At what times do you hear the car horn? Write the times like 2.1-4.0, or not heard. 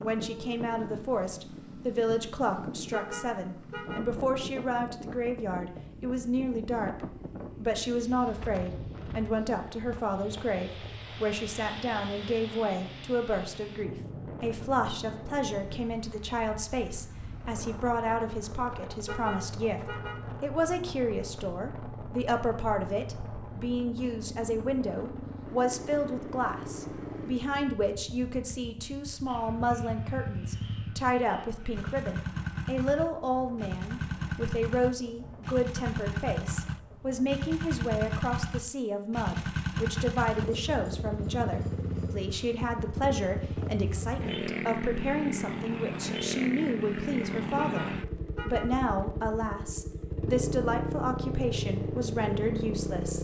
2.9-4.1, 19.1-20.2, 47.5-48.8.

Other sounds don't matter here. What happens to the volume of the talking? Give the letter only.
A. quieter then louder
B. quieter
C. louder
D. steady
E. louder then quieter
D.